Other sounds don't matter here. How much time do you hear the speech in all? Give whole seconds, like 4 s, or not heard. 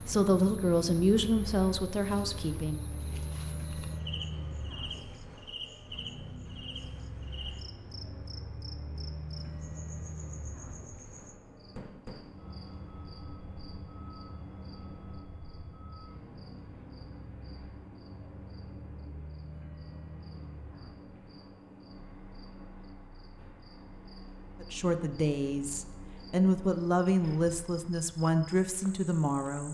8 s.